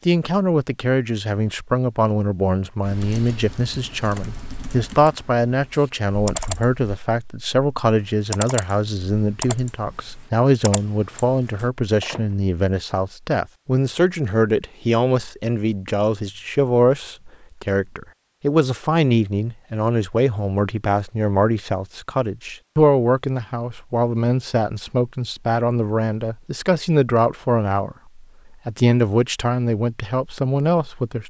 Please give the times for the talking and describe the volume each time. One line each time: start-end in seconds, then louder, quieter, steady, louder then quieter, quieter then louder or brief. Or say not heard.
0.1-31.2 steady.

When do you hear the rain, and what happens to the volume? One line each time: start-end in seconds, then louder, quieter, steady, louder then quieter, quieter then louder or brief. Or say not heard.
not heard.